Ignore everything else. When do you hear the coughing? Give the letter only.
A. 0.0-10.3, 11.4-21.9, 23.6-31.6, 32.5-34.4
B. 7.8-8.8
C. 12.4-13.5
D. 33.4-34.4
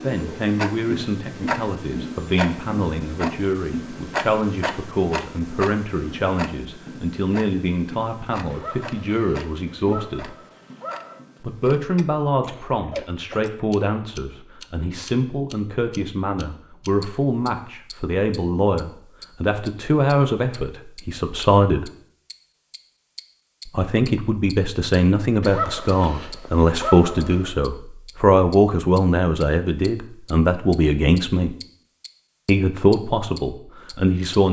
C.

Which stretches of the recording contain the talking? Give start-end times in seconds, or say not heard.
0.0-10.3, 11.4-21.9, 23.6-31.6, 32.5-34.4.